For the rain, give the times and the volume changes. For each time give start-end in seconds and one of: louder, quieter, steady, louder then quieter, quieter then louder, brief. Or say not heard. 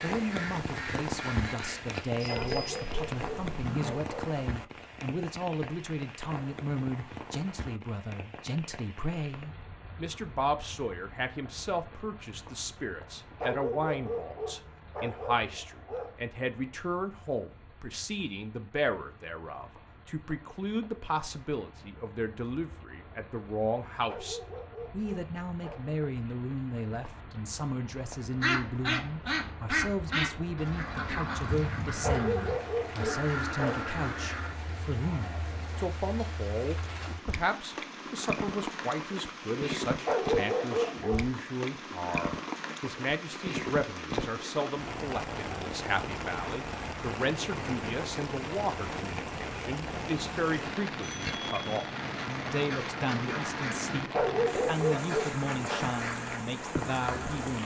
0.0-57.6 quieter then louder.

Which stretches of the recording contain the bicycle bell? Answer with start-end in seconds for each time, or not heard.
2.2-2.8, 51.0-51.9.